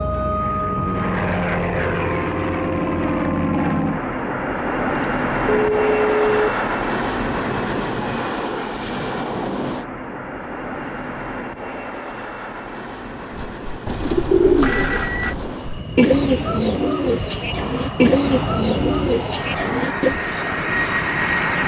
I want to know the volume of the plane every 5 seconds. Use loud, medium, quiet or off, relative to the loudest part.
loud, loud, medium, medium, loud.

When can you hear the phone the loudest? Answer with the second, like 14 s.
6 s.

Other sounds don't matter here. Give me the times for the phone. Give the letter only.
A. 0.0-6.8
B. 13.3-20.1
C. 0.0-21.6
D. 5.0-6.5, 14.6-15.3
D.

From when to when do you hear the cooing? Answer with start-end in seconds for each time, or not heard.
13.3-20.1.